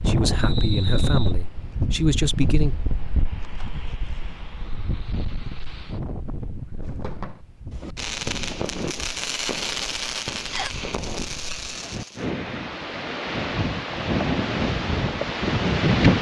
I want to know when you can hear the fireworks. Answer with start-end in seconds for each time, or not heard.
6.8-12.3.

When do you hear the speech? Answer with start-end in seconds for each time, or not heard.
0.0-2.8.